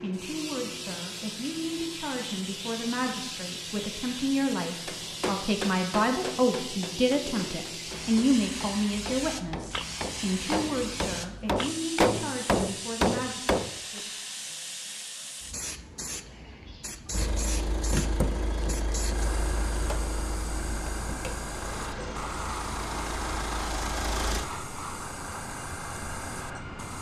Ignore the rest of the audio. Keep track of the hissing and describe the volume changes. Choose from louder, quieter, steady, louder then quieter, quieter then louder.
steady.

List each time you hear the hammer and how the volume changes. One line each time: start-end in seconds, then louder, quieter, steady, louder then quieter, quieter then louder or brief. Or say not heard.
4.8-13.7 quieter then louder.